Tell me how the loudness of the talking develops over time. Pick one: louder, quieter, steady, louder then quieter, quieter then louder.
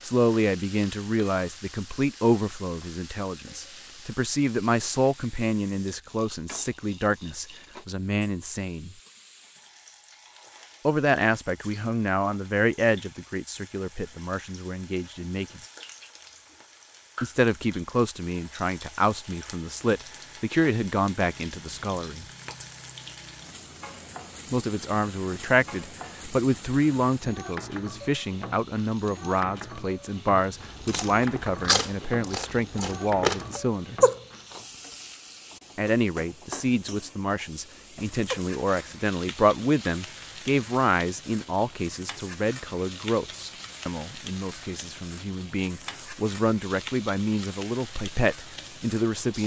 steady.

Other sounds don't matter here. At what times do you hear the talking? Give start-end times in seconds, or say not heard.
0.0-8.9, 10.8-15.6, 17.2-22.2, 24.5-34.0, 35.8-49.4.